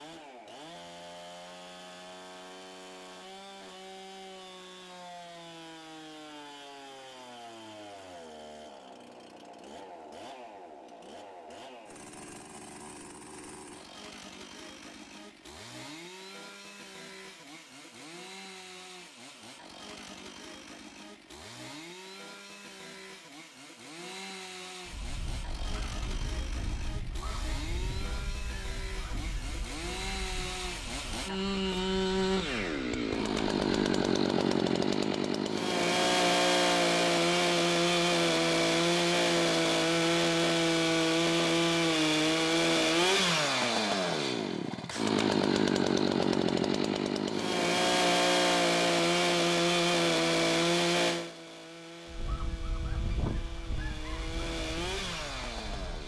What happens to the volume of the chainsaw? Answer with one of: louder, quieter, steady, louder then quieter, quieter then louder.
louder.